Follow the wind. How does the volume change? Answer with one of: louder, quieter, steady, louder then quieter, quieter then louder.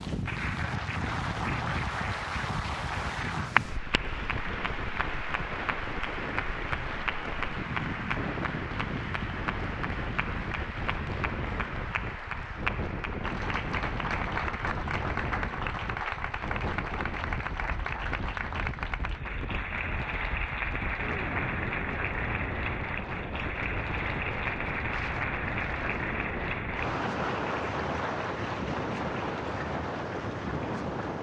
steady.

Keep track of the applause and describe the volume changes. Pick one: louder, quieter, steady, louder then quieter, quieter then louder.
steady.